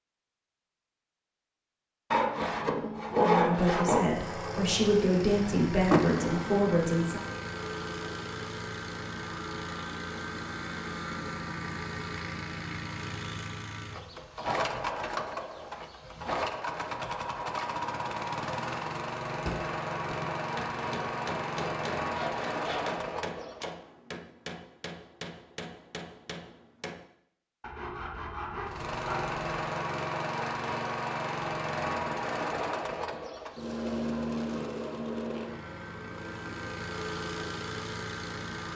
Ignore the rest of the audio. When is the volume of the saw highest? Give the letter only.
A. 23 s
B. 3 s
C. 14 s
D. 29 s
B.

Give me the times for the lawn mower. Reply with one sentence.
You can hear the lawn mower from 4.0 to 23.6 s and from 28.6 to 38.7 s.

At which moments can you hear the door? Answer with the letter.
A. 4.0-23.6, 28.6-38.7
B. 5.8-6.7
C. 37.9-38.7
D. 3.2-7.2
B.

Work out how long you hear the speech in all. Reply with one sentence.
The speech can be heard for 4 seconds in total.